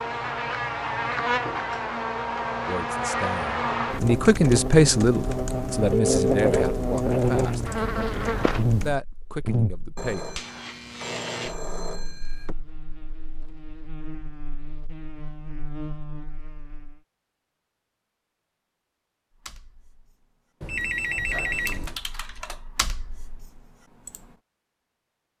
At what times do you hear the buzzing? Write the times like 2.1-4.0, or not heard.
0.0-17.0.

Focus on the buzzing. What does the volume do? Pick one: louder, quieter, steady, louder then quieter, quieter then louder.
quieter.